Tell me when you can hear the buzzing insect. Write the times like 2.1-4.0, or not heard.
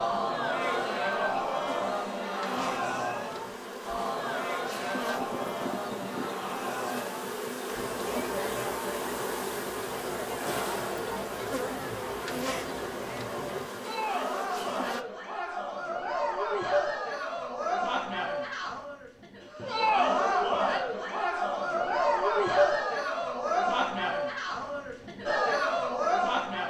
0.0-15.1.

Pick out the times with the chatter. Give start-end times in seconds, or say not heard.
0.0-26.6.